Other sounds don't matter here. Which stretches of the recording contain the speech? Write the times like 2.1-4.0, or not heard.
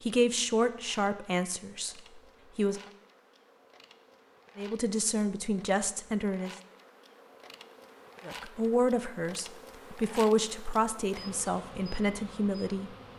0.0-2.8, 4.5-6.5, 8.2-12.9.